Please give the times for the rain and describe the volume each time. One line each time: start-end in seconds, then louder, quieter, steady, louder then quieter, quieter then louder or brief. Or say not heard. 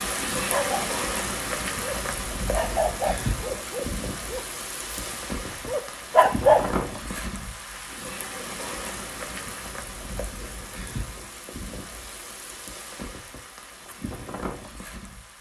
0.0-15.3 quieter.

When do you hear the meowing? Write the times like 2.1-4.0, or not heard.
not heard.